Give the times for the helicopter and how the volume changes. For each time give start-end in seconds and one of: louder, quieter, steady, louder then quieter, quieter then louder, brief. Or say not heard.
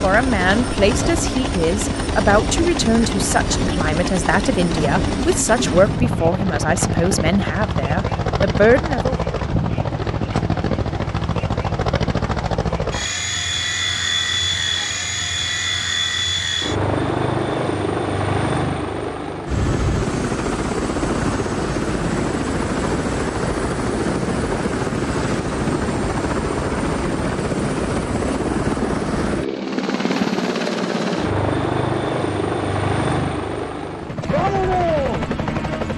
0.0-35.9 steady.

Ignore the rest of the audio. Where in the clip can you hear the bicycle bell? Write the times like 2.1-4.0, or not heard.
not heard.